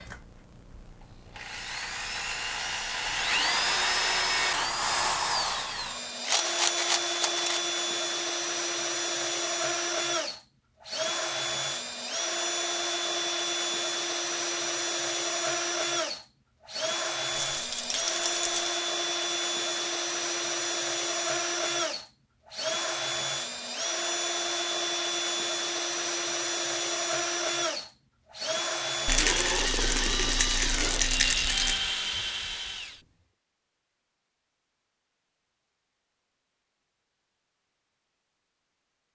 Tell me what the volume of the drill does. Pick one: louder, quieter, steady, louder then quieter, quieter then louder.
steady.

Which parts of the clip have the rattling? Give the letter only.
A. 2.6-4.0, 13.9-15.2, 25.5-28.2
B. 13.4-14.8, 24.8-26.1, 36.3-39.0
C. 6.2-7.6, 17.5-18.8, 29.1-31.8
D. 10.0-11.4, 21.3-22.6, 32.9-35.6
C.